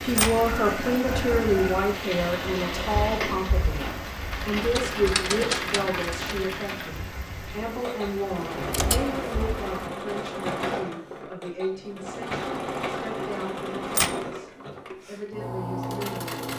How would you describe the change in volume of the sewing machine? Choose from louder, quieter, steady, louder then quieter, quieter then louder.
steady.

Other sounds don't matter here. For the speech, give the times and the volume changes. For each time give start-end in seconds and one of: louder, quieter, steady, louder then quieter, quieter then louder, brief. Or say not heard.
0.0-16.5 quieter.